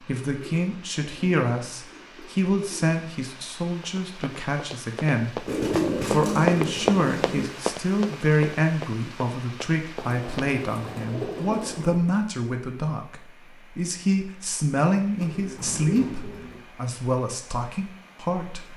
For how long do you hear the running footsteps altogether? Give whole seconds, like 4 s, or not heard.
7 s.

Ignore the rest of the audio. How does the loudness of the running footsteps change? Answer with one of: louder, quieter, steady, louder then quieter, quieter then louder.
louder then quieter.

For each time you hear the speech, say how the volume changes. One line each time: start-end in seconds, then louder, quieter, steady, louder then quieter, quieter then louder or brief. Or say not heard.
0.1-18.7 steady.